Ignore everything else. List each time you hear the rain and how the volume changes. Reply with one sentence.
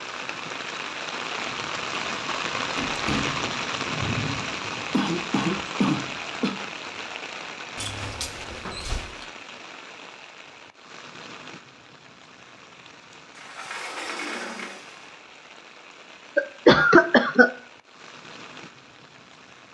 The rain can be heard from 0.0 to 19.6 s, getting quieter.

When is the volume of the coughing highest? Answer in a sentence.
The loudest moment of the coughing is at 17 seconds.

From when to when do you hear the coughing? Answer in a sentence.
The coughing can be heard from 4.9 to 6.5 s and from 16.4 to 17.5 s.